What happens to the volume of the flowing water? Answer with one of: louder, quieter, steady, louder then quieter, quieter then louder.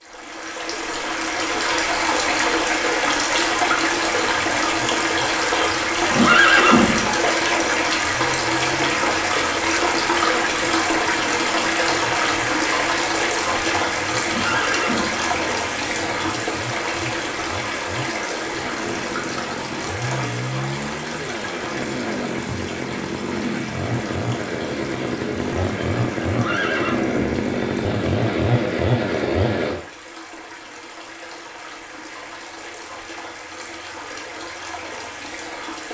quieter.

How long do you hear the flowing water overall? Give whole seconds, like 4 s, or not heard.
36 s.